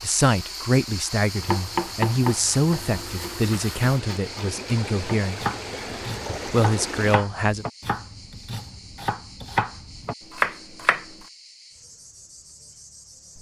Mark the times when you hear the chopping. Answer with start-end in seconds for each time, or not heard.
1.4-11.2.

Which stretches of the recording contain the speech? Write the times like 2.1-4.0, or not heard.
0.0-5.4, 6.5-7.7.